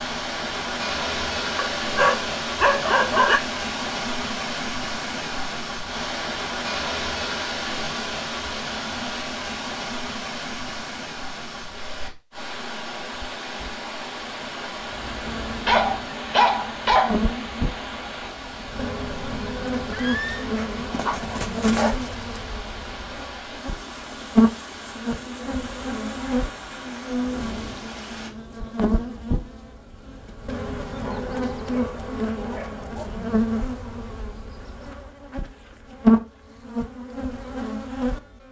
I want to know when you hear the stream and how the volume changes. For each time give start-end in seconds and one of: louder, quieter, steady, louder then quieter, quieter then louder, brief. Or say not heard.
0.0-28.3 quieter.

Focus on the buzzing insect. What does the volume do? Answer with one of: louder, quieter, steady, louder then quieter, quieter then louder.
louder.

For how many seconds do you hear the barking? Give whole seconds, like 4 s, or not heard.
7 s.